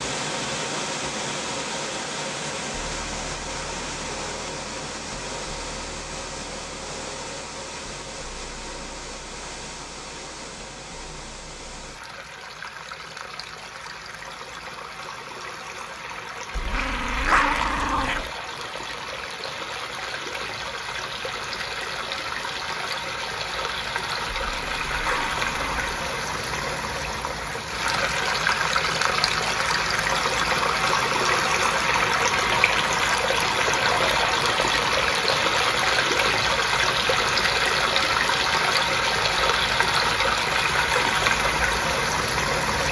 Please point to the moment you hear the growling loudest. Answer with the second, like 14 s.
17 s.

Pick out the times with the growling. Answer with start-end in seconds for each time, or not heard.
16.6-18.3, 24.3-26.0.